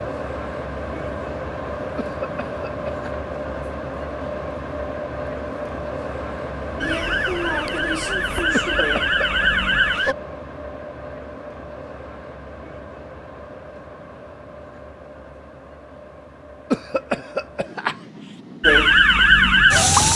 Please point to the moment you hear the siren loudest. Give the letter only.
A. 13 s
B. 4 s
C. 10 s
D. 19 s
D.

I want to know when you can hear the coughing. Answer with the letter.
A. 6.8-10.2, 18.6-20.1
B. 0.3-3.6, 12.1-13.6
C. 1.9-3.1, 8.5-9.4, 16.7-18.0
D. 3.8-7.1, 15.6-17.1
C.